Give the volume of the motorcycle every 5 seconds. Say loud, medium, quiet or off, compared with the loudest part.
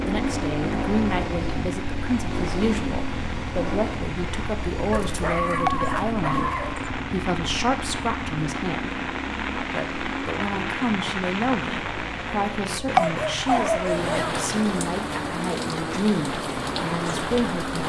loud, loud, medium, medium.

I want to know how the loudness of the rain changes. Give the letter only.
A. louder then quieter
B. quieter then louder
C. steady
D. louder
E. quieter
D.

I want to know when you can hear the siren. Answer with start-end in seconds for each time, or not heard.
not heard.